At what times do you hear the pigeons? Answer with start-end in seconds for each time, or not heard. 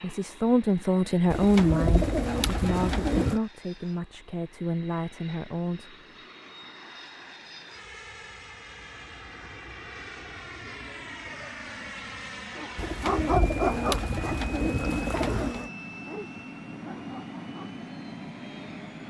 1.3-3.4, 12.8-15.7.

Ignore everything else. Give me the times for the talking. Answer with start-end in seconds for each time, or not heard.
0.0-6.0.